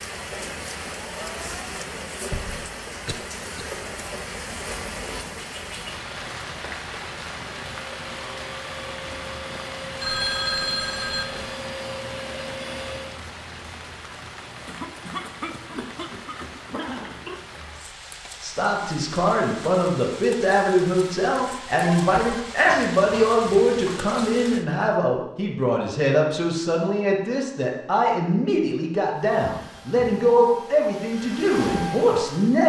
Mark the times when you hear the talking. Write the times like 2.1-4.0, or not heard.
18.4-32.6.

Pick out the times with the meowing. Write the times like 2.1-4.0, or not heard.
not heard.